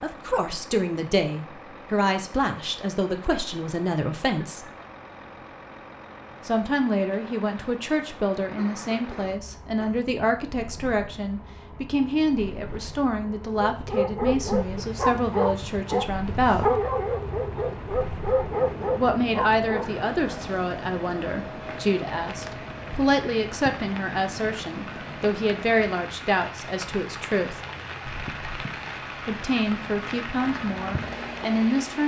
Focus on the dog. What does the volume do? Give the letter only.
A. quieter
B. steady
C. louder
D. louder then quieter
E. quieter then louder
B.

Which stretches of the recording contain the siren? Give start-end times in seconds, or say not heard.
not heard.